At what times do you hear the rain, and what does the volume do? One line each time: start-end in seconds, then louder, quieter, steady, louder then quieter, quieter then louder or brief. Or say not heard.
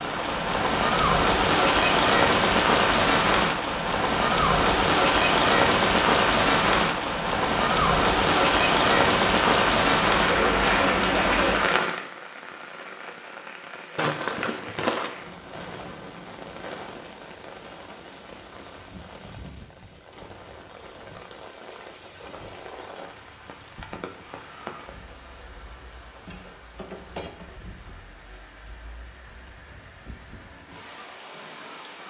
0.0-32.0 quieter.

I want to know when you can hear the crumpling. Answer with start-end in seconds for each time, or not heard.
13.9-15.2.